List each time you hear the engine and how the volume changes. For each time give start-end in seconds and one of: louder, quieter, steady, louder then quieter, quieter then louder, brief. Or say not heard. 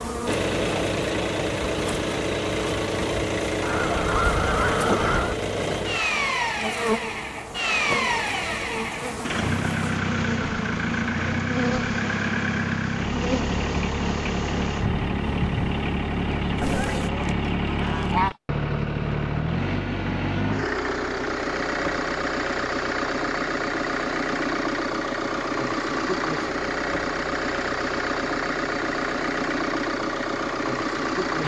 0.1-31.4 steady.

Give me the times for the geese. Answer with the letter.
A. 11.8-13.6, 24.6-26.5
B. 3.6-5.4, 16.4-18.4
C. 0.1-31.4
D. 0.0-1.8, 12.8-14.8
B.